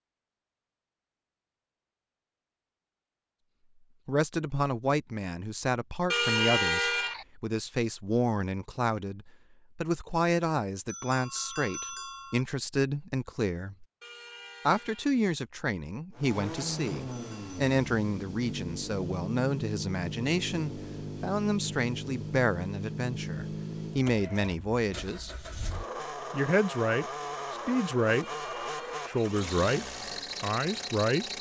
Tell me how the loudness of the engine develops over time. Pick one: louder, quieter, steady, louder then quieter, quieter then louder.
steady.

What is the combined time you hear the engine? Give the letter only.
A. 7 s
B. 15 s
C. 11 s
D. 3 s
B.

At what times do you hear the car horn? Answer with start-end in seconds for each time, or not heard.
6.1-7.2, 14.0-15.2, 28.2-29.4.